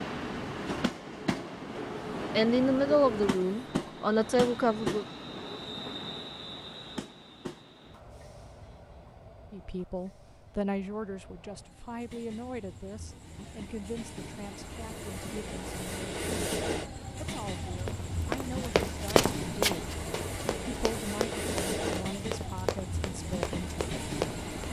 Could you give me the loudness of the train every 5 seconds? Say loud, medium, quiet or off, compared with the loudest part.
loud, medium, quiet, loud, loud.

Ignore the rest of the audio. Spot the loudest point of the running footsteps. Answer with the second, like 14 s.
19 s.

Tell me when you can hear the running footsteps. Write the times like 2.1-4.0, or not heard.
17.8-24.6.